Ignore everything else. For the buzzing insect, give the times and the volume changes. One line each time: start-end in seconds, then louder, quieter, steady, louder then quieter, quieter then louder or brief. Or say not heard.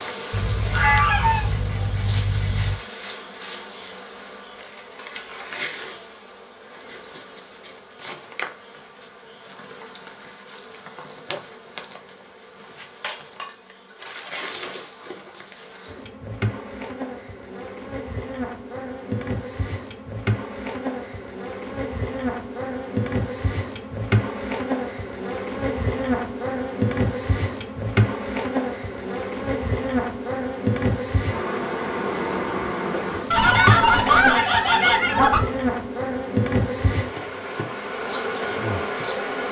0.0-39.4 louder.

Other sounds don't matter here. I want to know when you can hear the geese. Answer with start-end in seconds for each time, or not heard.
0.3-2.8, 33.3-35.4.